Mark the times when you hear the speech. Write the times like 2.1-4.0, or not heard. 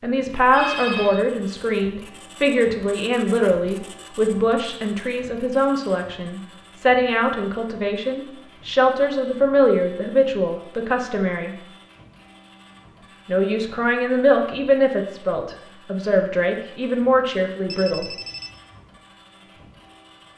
0.0-11.6, 13.2-18.1.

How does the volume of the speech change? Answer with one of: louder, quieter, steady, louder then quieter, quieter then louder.
steady.